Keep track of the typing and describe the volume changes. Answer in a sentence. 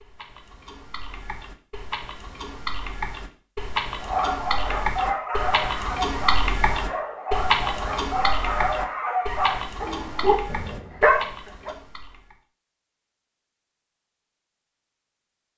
The volume of the typing goes up, then down.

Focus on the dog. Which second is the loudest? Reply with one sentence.
The volume of the dog peaks at 11 seconds.